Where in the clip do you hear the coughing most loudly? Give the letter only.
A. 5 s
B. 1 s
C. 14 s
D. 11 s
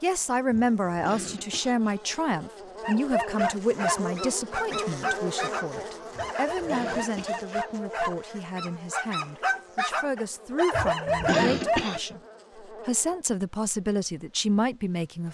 D.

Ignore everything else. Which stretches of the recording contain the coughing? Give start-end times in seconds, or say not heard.
0.5-2.0, 6.2-7.4, 10.7-12.0.